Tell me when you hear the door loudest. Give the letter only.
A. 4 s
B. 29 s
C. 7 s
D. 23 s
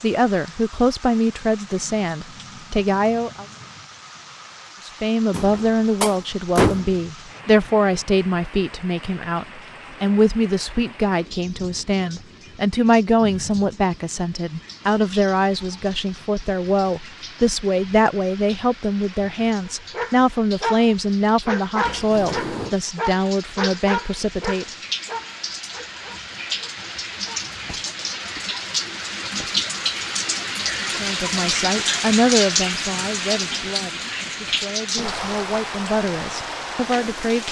C.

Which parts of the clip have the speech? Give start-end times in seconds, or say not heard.
0.0-3.5, 4.8-24.6, 30.9-37.4.